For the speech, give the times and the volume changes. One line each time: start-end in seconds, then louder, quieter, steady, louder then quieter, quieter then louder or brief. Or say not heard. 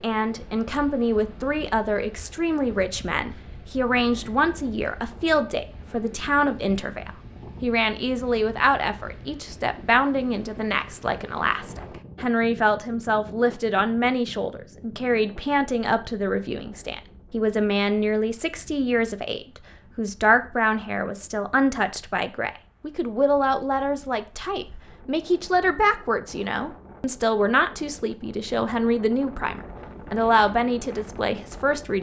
0.0-31.9 steady.